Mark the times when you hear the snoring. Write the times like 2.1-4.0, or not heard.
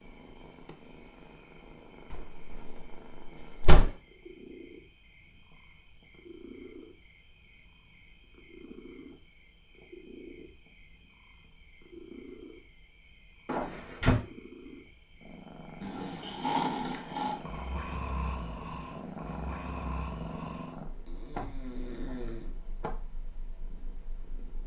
15.8-22.6.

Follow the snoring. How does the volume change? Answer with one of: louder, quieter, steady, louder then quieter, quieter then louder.
quieter.